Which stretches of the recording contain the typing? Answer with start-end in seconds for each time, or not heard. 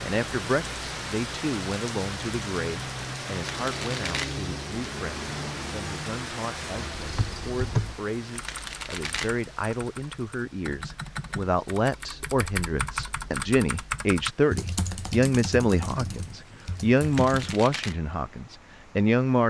7.0-17.6.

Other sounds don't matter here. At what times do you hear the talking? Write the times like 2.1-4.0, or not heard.
0.0-19.4.